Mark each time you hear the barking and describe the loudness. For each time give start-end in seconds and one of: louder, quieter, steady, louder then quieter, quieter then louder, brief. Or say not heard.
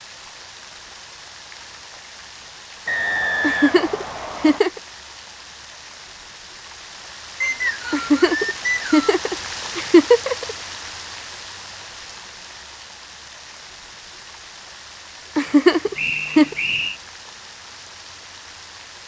not heard.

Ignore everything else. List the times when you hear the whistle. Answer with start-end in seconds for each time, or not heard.
2.9-4.6, 7.4-9.1, 15.9-17.0.